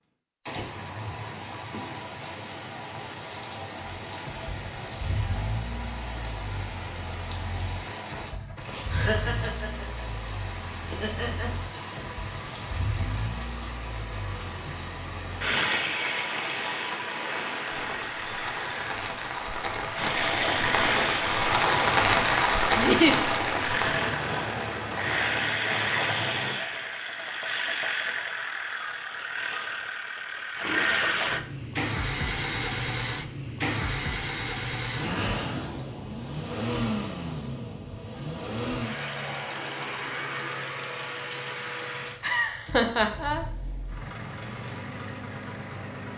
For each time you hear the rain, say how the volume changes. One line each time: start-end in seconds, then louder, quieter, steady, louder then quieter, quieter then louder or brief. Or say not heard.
0.0-26.6 louder.